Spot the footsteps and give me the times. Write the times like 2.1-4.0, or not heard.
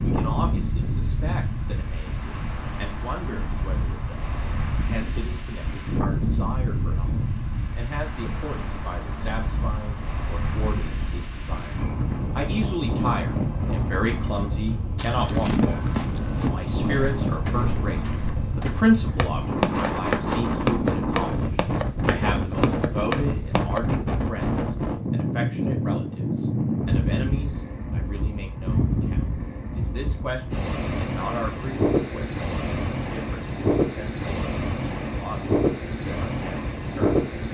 14.9-23.8.